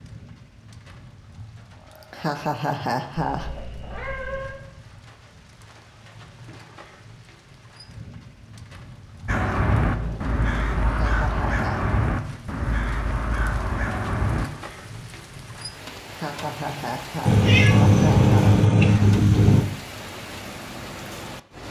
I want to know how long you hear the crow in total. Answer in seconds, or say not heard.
5 s.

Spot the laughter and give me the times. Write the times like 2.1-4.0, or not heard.
2.0-3.5, 10.8-11.9, 16.1-18.6.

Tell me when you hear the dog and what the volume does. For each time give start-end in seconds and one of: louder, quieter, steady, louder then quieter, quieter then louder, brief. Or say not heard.
not heard.